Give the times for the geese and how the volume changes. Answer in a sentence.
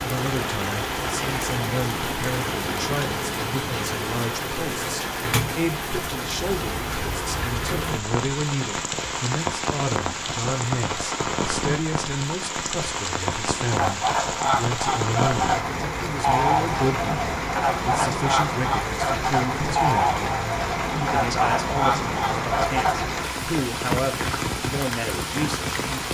The geese can be heard from 13.7 to 23.2 s, at a steady volume.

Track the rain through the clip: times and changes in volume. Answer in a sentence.
The rain can be heard from 0.0 to 26.0 s, at a steady volume.